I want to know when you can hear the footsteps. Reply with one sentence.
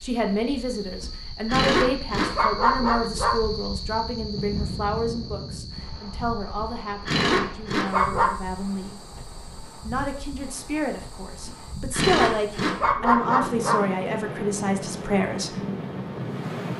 The footsteps can't be heard in this clip.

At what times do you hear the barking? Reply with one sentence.
The barking can be heard from 1.0 to 3.4 s, from 6.5 to 8.3 s and from 11.4 to 13.8 s.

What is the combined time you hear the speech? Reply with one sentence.
You can hear the speech for 15 seconds altogether.